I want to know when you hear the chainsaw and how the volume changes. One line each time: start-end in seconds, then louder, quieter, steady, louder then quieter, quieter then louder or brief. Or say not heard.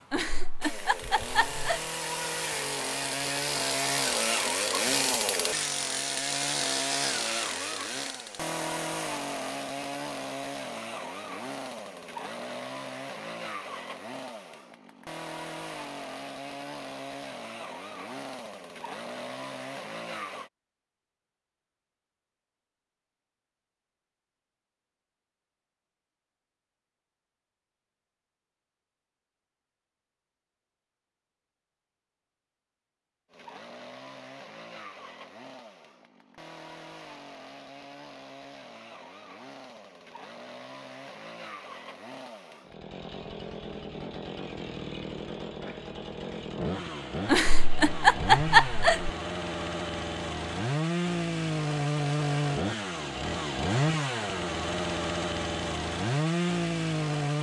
0.0-20.5 quieter
33.3-57.3 louder.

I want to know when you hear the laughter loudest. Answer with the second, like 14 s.
48 s.